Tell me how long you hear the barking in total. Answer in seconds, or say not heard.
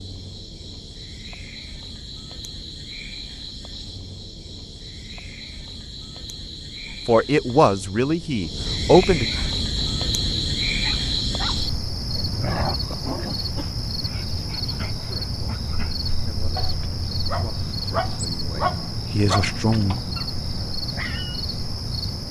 12 s.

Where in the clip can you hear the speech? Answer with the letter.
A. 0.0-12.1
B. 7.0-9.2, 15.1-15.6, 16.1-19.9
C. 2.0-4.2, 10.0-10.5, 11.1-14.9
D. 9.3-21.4
B.